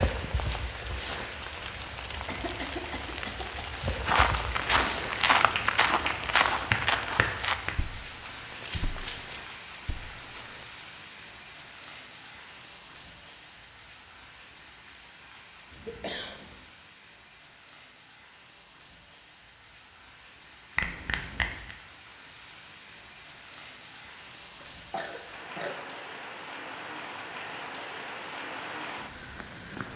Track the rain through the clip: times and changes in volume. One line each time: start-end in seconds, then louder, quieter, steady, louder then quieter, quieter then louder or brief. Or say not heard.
0.0-29.9 quieter then louder.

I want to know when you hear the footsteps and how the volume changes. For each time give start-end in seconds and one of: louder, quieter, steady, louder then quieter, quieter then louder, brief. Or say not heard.
3.8-10.7 quieter.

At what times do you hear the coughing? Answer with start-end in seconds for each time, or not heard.
2.2-3.6, 15.7-16.6, 24.6-25.8.